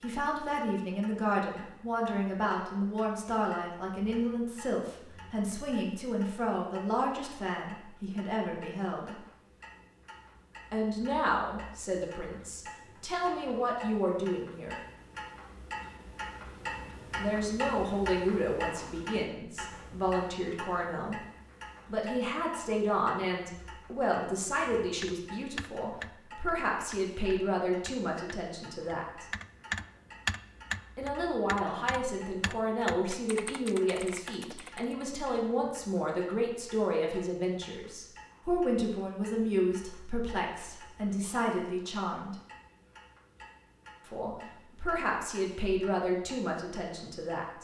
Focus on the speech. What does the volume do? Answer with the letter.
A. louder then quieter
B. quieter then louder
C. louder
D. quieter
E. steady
E.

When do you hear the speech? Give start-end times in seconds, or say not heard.
0.0-9.2, 10.7-14.8, 17.1-21.1, 21.9-29.2, 30.9-42.4, 44.0-47.6.